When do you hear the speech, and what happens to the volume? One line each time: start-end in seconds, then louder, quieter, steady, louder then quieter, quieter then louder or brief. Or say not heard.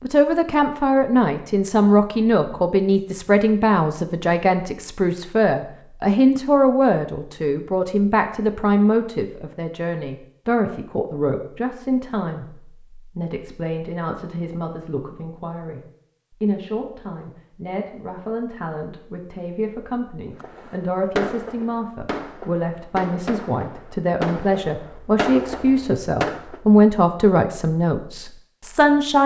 0.0-29.2 quieter then louder.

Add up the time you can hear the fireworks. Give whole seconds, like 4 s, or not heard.
6 s.